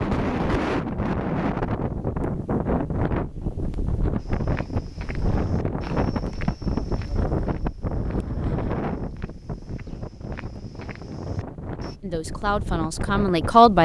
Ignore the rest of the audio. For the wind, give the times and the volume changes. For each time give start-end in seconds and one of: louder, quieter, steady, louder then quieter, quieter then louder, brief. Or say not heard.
0.0-13.7 quieter.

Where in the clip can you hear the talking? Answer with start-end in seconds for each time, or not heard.
12.0-13.7.